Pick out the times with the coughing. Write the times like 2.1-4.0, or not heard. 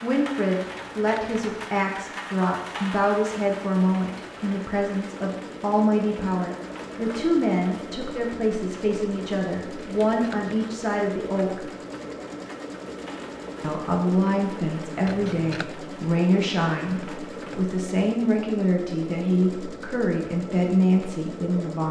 not heard.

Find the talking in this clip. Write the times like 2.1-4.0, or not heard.
0.0-11.6, 13.6-21.8.